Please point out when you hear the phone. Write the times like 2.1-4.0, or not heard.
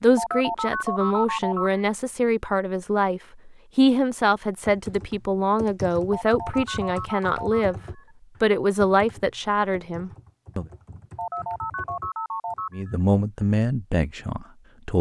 0.1-1.8, 6.1-8.1, 11.2-12.9.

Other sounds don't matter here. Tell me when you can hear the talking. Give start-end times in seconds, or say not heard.
0.0-7.8, 8.4-10.7, 12.7-14.9.